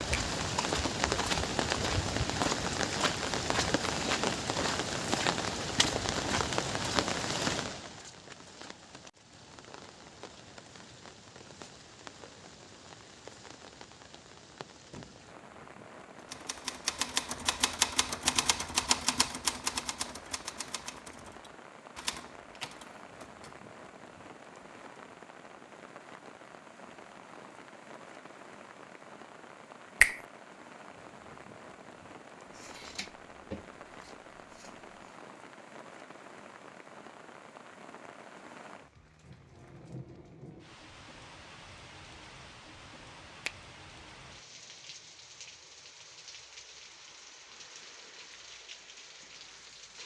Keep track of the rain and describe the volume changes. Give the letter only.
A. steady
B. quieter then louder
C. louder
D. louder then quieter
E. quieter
E.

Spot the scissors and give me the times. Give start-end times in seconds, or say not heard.
32.5-35.1.